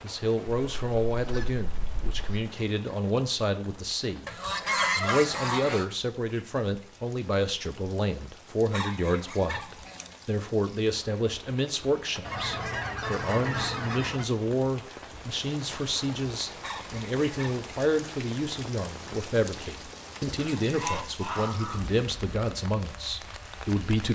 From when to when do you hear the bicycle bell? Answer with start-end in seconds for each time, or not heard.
not heard.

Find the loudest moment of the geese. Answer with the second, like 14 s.
5 s.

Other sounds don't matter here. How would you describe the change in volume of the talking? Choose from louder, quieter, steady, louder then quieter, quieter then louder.
steady.